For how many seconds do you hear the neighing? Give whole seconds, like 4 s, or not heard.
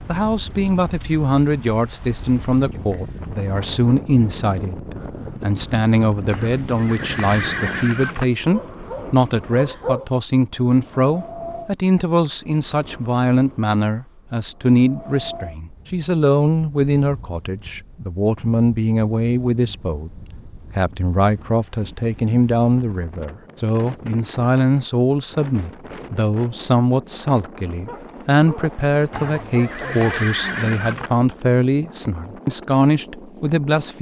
4 s.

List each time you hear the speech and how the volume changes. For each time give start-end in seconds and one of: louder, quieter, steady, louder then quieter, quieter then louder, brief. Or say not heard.
0.1-33.9 steady.